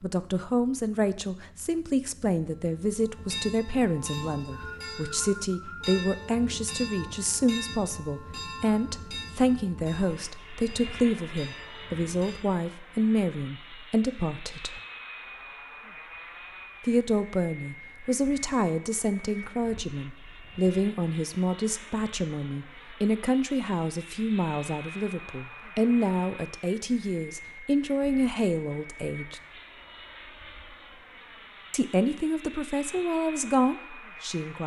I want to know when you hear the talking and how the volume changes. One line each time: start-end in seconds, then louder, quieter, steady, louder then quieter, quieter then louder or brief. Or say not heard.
0.0-14.8 steady
16.8-29.4 steady
31.7-34.6 brief.